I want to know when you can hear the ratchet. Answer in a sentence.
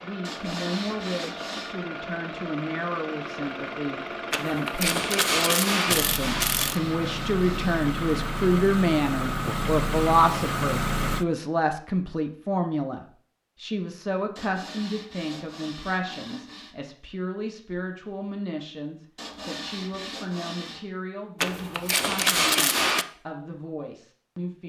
You can hear the ratchet from 4.3 to 6.8 s and from 21.4 to 23.1 s.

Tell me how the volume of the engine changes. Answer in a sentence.
The loudness of the engine goes up.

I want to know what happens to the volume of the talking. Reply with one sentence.
The loudness of the talking goes up, then down.